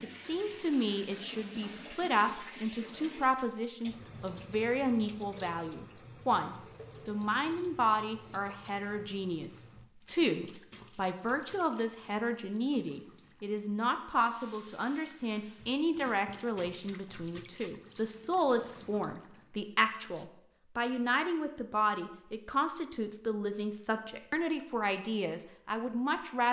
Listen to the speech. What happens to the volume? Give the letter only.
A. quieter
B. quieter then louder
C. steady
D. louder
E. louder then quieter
C.